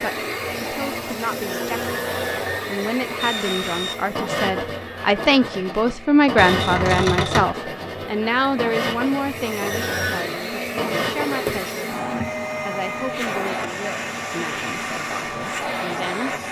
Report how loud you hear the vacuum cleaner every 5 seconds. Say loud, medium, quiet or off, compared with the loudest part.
loud, medium, loud, loud.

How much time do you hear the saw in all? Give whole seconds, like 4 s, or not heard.
8 s.